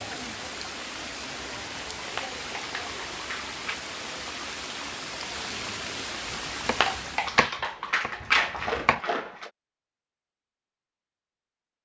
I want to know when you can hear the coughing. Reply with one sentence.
The coughing can't be heard in this clip.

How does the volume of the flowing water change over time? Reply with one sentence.
The loudness of the flowing water stays about the same.